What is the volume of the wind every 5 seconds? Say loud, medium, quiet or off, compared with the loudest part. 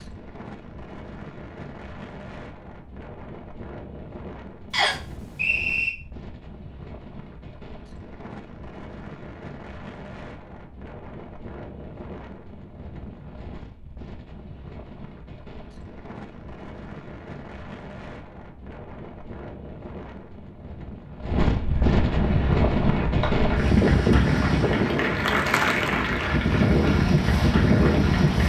quiet, quiet, quiet, quiet, loud, loud.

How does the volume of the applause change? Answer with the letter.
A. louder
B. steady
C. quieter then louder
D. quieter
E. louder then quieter
E.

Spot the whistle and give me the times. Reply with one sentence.
The whistle can be heard from 4.7 to 6.0 s.